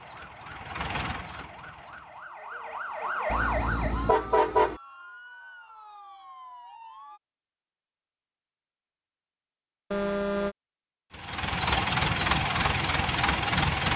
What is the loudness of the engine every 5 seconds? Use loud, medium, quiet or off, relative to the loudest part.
quiet, off, loud.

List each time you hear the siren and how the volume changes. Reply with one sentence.
You can hear the siren from 0.0 to 7.2 s, getting louder then quieter.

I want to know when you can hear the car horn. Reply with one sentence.
The car horn can be heard from 3.3 to 4.8 s and from 9.9 to 10.6 s.